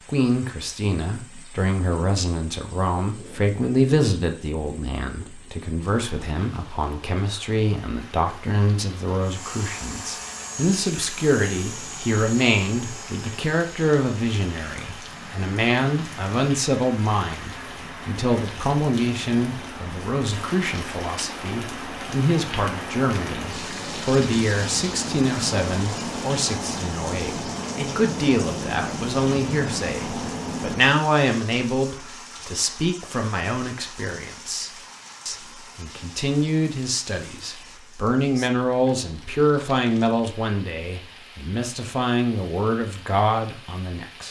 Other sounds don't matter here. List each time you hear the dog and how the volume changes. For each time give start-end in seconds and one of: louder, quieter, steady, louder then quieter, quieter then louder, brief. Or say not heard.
not heard.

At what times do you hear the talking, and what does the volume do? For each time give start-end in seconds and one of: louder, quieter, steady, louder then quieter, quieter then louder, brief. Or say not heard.
0.1-44.2 steady.